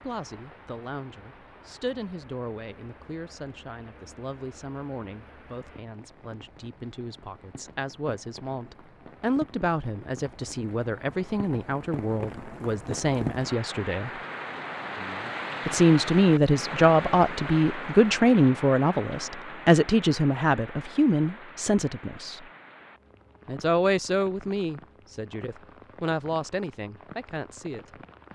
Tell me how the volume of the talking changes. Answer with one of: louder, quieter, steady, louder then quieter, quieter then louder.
louder then quieter.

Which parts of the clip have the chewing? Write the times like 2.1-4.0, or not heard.
not heard.